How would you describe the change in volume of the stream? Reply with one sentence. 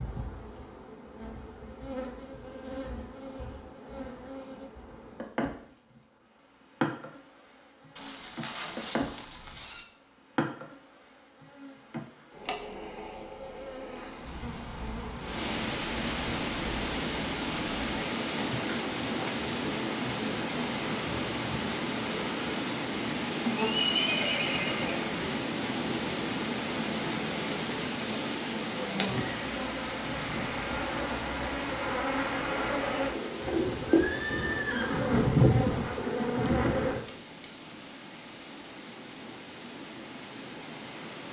The loudness of the stream goes down.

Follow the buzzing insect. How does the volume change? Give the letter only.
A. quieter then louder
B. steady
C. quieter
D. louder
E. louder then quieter
D.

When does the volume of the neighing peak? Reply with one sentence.
The volume of the neighing peaks at 24 seconds.